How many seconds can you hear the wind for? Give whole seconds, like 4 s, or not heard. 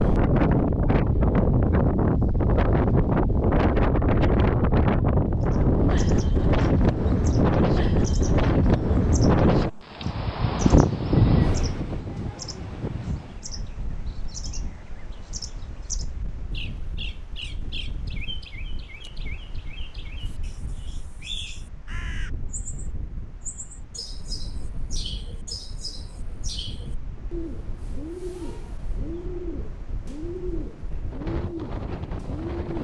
33 s.